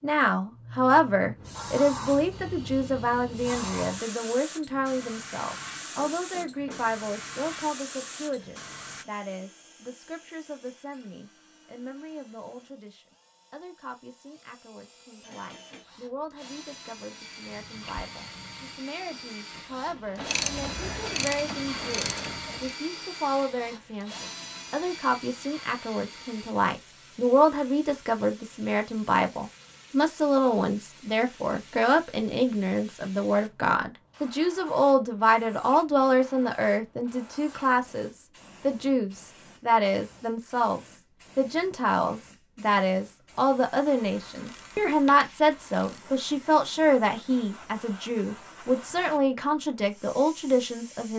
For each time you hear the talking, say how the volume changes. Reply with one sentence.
You can hear the talking from 0.0 to 51.1 s, getting quieter then louder.